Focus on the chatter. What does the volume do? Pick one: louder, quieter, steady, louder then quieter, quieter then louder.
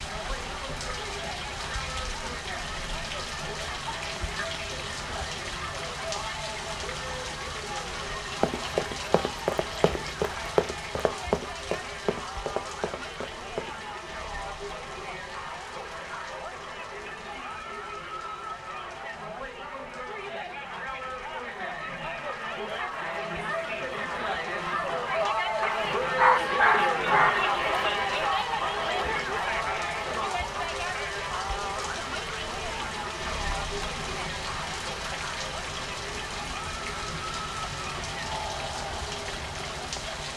louder then quieter.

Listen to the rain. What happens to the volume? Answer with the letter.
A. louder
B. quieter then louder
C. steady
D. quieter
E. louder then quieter
B.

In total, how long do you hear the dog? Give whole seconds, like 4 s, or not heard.
2 s.